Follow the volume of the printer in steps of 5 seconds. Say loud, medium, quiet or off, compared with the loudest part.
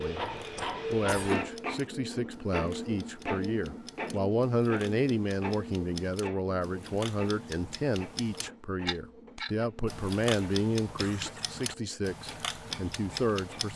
loud, medium, quiet.